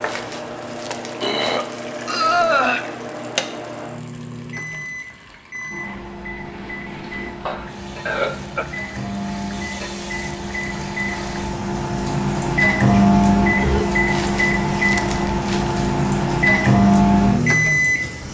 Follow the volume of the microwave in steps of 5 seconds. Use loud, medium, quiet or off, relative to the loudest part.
quiet, quiet, loud, loud.